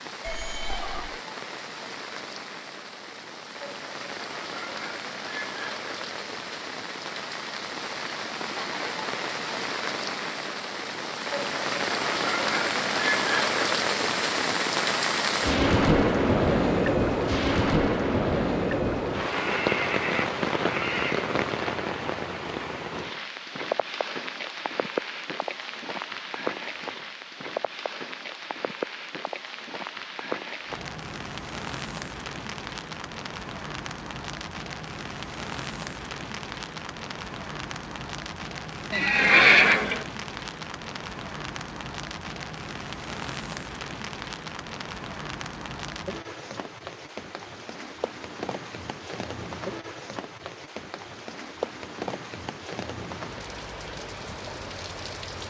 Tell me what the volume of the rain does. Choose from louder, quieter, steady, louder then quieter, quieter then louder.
louder then quieter.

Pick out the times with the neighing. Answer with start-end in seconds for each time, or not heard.
0.2-1.2, 19.3-21.3, 38.9-40.0.